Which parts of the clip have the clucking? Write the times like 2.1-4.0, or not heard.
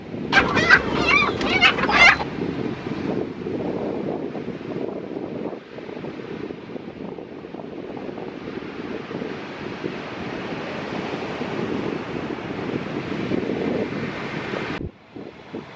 0.3-2.2.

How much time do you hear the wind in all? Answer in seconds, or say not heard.
16 s.